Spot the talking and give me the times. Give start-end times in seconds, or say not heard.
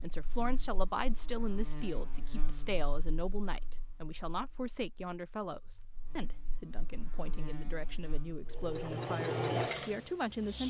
0.0-10.6.